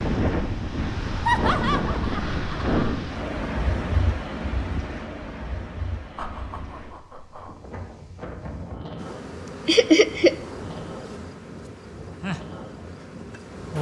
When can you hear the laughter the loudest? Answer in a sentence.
The loudest moment of the laughter is at 10 seconds.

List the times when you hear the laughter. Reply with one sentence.
The laughter can be heard from 1.2 to 3.0 s, from 6.2 to 7.6 s and from 9.7 to 10.3 s.